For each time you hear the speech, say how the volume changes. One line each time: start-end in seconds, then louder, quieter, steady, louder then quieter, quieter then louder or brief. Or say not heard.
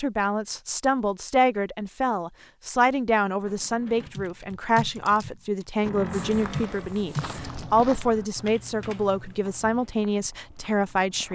0.0-11.3 steady.